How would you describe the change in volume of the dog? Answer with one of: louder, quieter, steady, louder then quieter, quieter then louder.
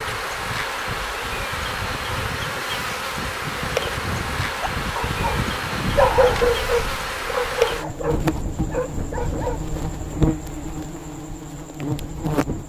quieter.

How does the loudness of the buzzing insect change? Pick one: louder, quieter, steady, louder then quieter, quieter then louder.
steady.